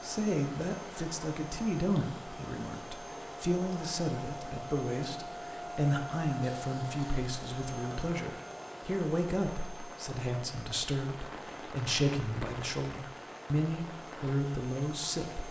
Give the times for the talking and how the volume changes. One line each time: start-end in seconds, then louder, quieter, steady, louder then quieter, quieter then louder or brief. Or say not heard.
0.0-15.4 steady.